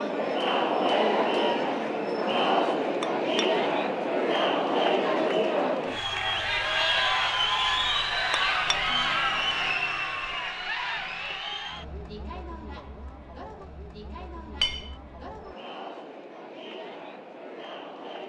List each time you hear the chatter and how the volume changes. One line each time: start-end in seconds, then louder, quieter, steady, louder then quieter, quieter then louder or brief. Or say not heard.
0.0-18.2 quieter.